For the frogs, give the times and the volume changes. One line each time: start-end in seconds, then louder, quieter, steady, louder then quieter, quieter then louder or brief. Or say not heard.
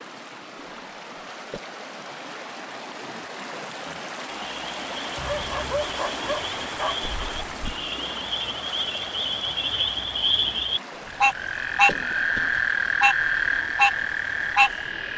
3.6-15.1 louder.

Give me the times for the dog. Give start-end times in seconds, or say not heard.
5.2-7.0.